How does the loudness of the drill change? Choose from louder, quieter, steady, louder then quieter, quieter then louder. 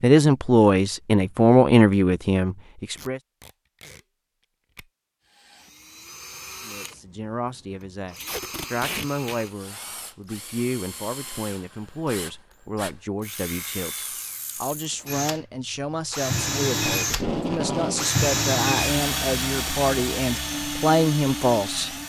louder.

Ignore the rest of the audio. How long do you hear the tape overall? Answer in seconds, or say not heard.
3 s.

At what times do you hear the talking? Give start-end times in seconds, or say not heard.
0.0-3.2, 6.7-21.9.